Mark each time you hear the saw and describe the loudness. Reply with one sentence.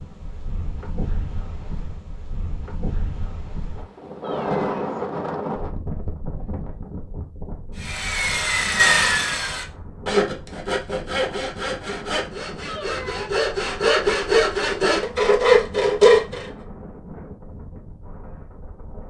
The saw can be heard from 7.8 to 16.4 s, getting quieter then louder.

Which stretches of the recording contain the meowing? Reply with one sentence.
The meowing can be heard from 4.2 to 4.8 s and from 12.7 to 13.3 s.